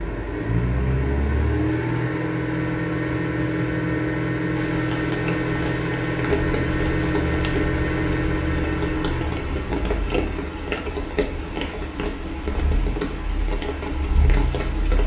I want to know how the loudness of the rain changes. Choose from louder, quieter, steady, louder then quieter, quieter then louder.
steady.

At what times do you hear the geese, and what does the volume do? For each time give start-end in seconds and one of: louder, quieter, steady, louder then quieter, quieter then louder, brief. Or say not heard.
not heard.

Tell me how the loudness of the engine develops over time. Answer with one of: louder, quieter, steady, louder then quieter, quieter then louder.
quieter.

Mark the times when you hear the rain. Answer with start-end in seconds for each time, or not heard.
4.5-15.0.